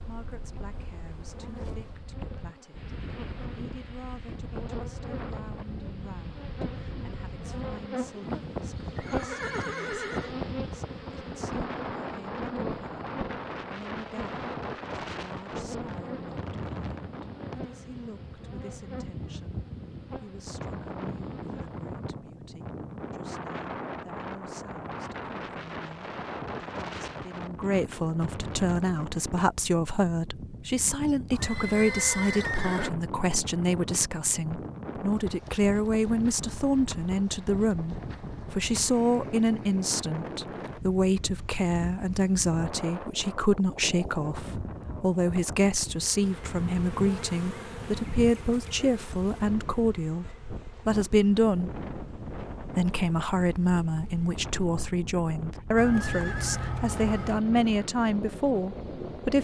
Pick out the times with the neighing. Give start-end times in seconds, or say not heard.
8.2-10.3, 31.3-32.9, 55.8-57.5.